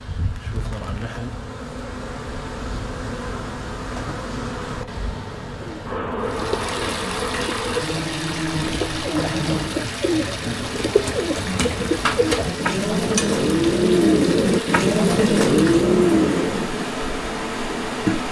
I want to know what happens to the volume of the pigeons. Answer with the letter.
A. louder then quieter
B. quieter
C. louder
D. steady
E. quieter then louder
C.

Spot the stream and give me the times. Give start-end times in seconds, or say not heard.
6.2-18.2.